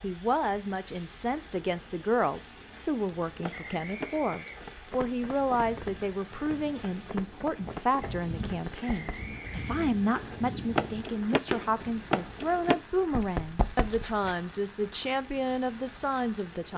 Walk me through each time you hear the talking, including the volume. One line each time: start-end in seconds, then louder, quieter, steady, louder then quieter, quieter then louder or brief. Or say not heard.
0.0-16.7 steady.